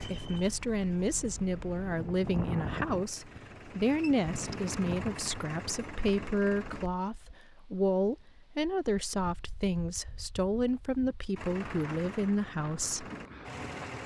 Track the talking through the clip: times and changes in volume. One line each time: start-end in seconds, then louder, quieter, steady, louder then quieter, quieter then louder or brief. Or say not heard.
0.0-13.1 steady.